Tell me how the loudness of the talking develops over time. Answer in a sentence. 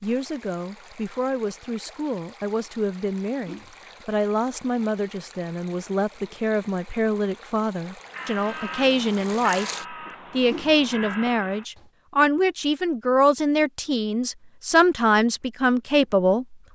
The loudness of the talking goes up.